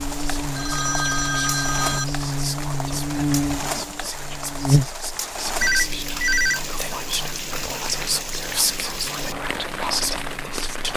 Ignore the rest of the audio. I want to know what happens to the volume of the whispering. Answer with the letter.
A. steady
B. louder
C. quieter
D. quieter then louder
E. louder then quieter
B.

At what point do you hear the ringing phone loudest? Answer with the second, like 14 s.
6 s.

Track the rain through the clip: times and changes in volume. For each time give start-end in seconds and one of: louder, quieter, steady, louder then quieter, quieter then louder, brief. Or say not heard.
0.0-10.9 steady.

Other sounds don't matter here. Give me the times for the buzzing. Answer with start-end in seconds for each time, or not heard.
0.0-10.9.